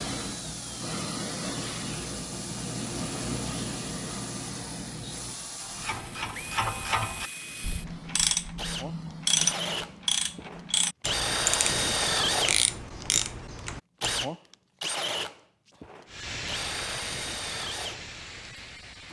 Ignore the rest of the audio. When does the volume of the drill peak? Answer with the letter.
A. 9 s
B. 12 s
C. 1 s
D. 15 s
B.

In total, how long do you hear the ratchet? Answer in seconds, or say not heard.
9 s.